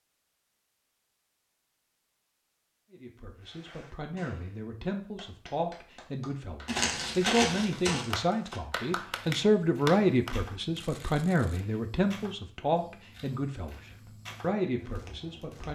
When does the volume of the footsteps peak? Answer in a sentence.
The loudest moment of the footsteps is at 7 seconds.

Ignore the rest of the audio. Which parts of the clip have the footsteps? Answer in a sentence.
The footsteps can be heard from 6.7 to 15.7 s.